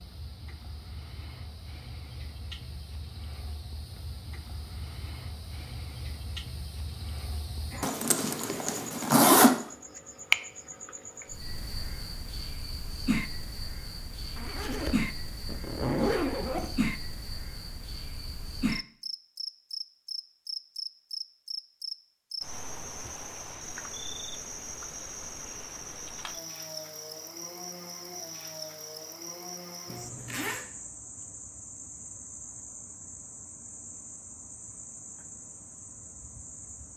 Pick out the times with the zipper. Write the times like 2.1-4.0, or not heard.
7.8-9.5, 14.3-16.8, 29.9-30.6.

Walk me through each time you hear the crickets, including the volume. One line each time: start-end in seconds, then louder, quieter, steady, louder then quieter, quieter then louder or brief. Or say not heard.
0.0-36.9 louder then quieter.